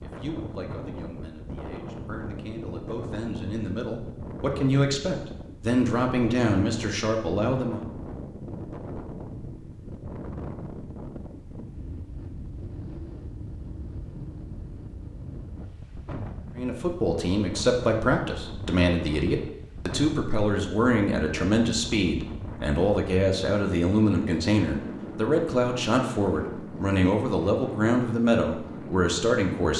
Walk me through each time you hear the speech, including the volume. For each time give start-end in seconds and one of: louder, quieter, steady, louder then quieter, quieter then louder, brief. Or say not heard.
0.0-7.8 louder
16.6-29.7 steady.